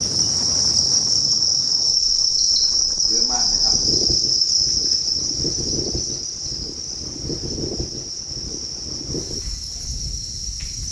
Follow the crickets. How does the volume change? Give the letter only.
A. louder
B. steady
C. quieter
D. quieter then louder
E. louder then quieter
C.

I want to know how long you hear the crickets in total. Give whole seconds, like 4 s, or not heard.
11 s.